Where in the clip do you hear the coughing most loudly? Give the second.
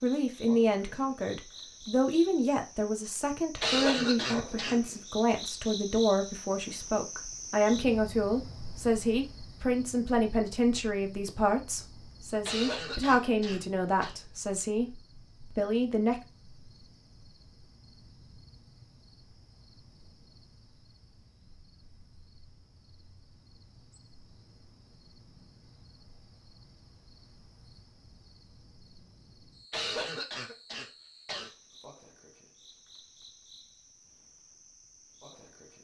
4 s.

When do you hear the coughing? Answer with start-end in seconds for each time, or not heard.
3.6-4.8, 12.4-14.2, 29.7-31.5.